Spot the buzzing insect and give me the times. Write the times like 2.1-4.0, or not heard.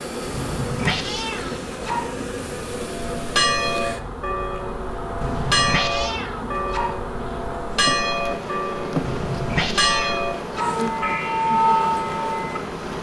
0.0-12.9.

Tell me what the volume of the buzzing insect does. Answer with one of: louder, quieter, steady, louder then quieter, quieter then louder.
steady.